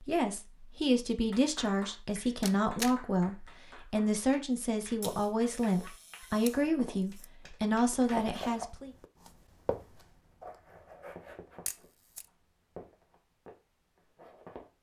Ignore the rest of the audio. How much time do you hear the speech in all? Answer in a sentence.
You can hear the speech for 9 seconds altogether.